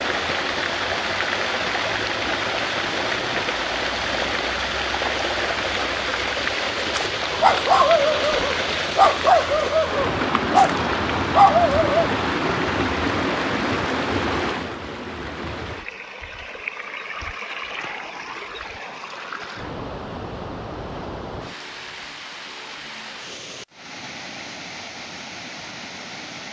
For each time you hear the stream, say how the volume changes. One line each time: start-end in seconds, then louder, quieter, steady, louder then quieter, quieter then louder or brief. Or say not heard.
0.0-26.4 quieter.